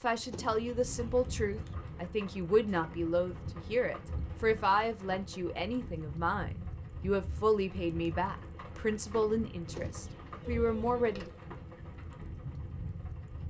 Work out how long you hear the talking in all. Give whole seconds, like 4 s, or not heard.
11 s.